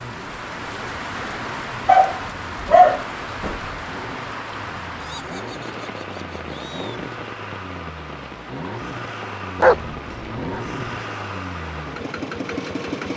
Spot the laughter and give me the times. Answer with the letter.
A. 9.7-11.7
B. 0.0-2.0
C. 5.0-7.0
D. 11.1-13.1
C.